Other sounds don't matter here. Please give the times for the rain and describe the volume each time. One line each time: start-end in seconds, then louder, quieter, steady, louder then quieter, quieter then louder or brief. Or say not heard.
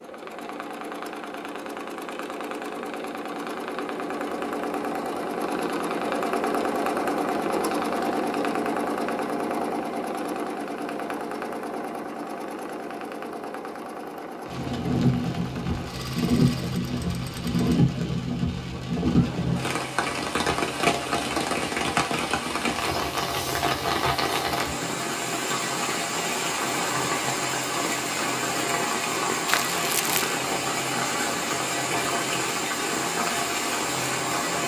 14.4-34.6 steady.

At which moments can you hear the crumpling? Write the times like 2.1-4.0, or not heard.
29.4-30.4.